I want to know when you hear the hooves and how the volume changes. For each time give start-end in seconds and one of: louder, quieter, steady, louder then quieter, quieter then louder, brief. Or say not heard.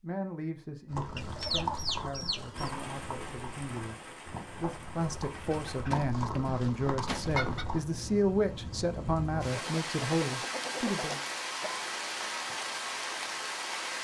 0.9-7.8 quieter then louder.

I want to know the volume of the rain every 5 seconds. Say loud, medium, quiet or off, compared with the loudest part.
medium, medium, loud.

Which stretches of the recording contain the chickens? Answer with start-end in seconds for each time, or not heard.
1.1-2.7, 5.2-7.7, 9.4-11.8.